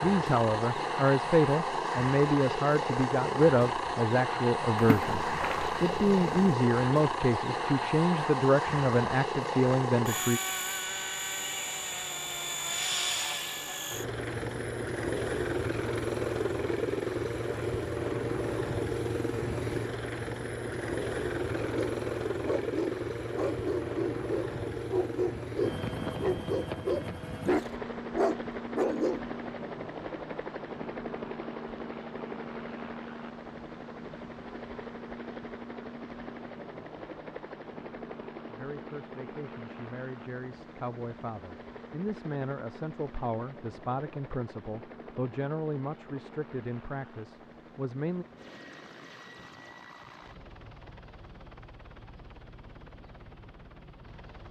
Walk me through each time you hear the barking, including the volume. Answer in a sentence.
The barking can be heard from 21.5 to 29.2 s, getting louder.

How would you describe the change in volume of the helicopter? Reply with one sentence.
The loudness of the helicopter goes down.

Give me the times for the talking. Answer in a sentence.
You can hear the talking from 0.0 to 10.4 s and from 38.5 to 48.2 s.